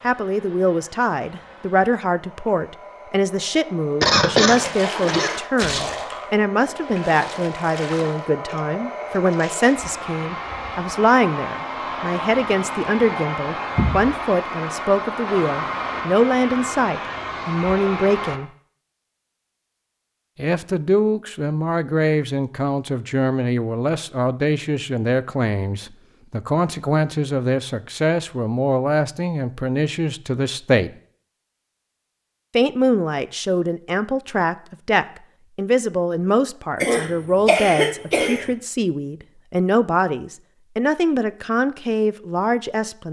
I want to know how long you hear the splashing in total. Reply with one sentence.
The splashing can be heard for 5 seconds in total.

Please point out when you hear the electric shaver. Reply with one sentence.
The electric shaver can't be heard in this clip.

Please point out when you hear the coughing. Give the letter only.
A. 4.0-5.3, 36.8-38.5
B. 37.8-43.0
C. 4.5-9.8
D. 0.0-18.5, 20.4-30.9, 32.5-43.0
A.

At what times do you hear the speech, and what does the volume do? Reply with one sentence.
The speech can be heard from 0.0 to 18.5 s, at a steady volume; from 20.4 to 30.9 s, at a steady volume; and from 32.5 to 43.0 s, at a steady volume.